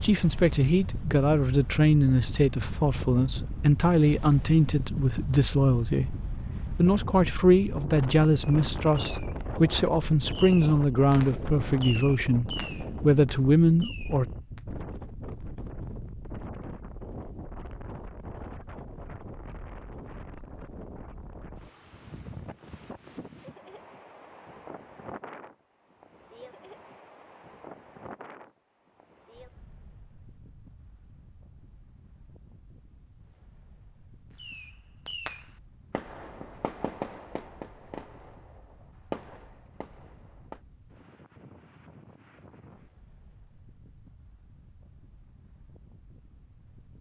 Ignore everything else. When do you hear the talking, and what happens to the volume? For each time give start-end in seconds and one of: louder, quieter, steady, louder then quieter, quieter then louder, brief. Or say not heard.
0.0-14.2 steady.